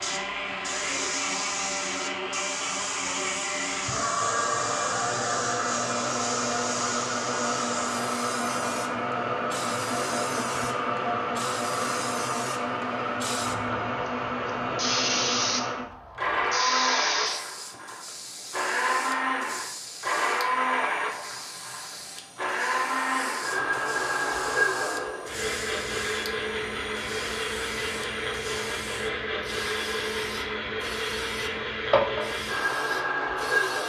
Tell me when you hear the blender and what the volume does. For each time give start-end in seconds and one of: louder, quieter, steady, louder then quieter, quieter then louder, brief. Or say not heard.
0.0-33.8 steady.